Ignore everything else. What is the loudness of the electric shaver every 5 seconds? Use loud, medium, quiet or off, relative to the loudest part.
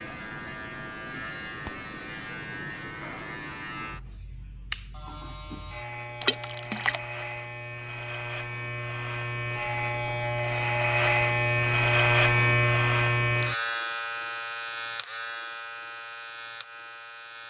quiet, medium, loud, medium.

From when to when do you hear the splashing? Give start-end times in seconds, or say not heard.
6.2-7.0.